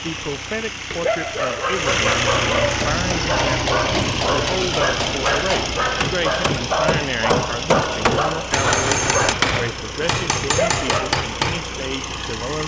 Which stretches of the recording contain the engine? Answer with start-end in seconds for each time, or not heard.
0.0-12.6.